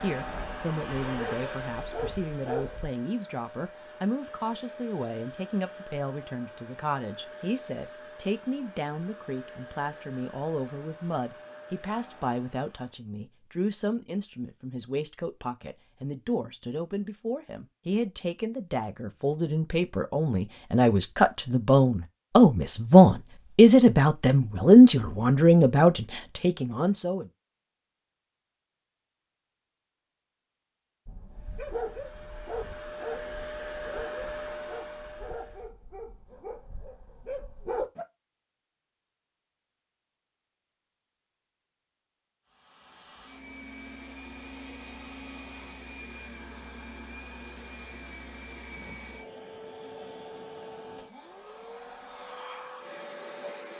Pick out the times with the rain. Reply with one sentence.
The rain can't be heard in this clip.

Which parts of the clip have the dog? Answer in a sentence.
You can hear the dog from 0.1 to 2.9 s and from 31.1 to 38.0 s.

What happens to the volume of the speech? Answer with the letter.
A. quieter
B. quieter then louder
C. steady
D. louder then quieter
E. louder
E.